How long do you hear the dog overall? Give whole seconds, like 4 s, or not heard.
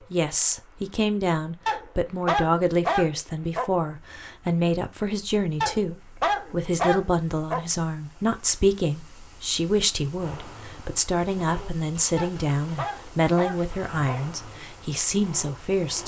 6 s.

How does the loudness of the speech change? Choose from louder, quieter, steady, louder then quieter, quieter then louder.
steady.